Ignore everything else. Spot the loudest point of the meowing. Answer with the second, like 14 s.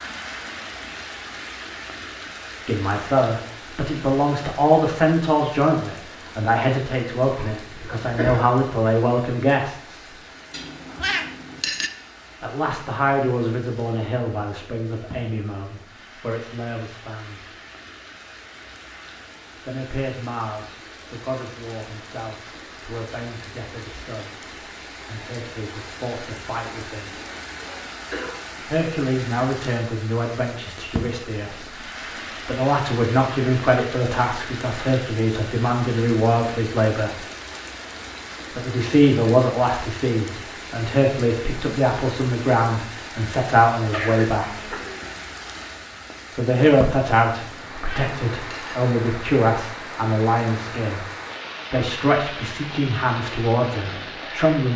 11 s.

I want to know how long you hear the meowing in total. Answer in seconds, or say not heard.
3 s.